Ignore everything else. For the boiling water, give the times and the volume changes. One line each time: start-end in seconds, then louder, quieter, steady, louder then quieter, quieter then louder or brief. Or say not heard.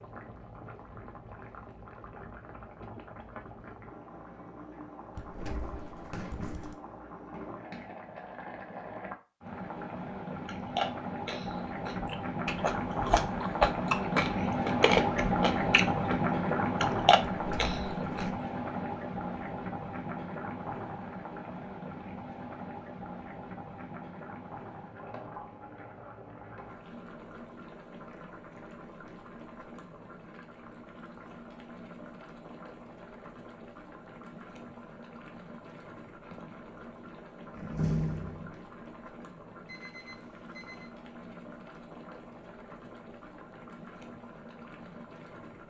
0.0-45.6 louder then quieter.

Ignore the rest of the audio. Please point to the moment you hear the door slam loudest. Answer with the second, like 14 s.
38 s.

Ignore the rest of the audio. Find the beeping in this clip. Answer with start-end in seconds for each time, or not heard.
39.6-40.9.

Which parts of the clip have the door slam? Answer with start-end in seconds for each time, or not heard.
5.2-6.8, 17.3-18.4, 37.5-38.5.